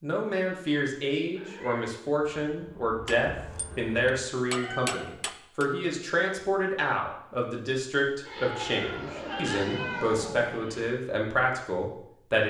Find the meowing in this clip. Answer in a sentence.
You can hear the meowing from 1.4 to 1.9 s, from 4.5 to 5.2 s and from 8.6 to 10.2 s.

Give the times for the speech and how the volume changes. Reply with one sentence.
You can hear the speech from 0.0 to 12.4 s, at a steady volume.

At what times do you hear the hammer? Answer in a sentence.
The hammer can be heard from 3.0 to 5.7 s.